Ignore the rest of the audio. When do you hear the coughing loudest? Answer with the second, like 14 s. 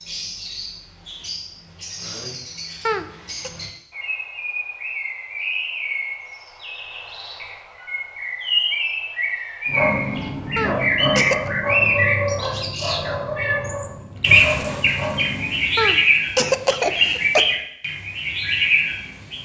17 s.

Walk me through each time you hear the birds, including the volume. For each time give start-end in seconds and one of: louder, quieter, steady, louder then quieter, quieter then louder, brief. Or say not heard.
0.0-19.4 louder.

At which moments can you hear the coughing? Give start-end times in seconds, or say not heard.
2.9-3.5, 10.6-11.5, 15.8-17.4.